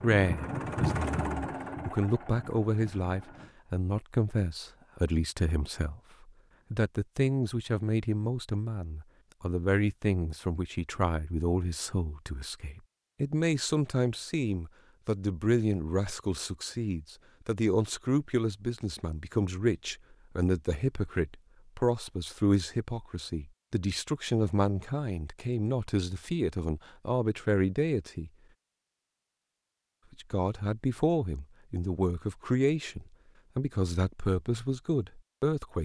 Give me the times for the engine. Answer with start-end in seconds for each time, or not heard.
0.0-3.5.